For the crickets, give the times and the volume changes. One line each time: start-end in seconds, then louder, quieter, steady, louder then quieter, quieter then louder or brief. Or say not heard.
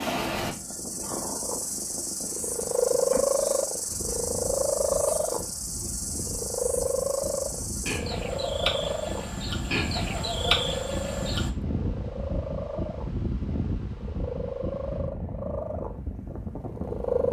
0.0-11.5 louder.